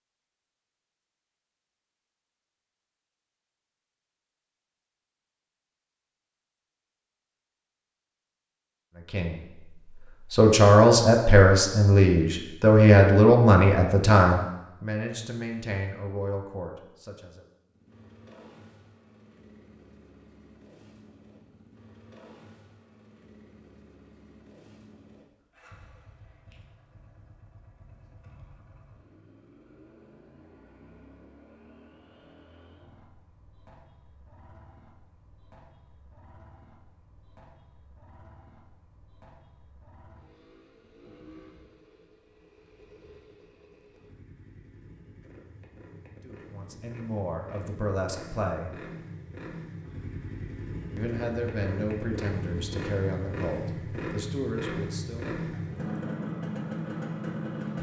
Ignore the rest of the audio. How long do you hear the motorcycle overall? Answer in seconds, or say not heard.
40 s.